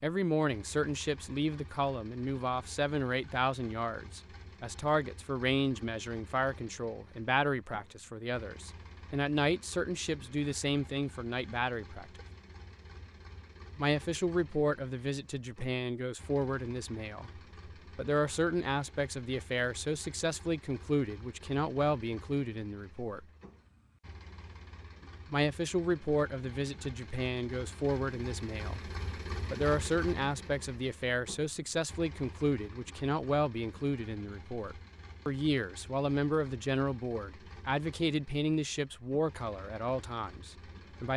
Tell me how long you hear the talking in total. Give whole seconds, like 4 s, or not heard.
37 s.